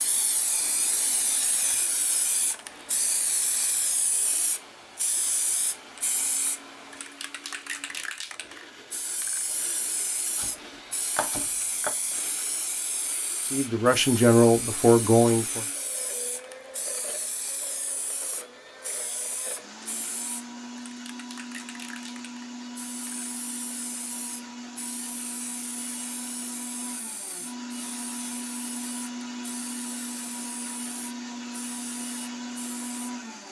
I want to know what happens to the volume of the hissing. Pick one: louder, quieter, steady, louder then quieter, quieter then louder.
quieter.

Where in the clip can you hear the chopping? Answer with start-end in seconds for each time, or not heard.
10.3-11.9.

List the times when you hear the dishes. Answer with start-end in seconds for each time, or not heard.
not heard.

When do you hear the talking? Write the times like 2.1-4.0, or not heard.
13.4-15.7.